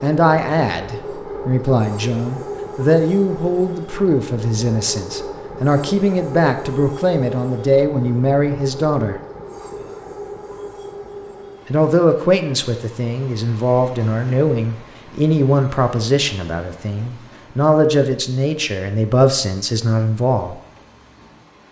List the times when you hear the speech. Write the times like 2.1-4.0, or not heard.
0.0-9.2, 11.7-20.6.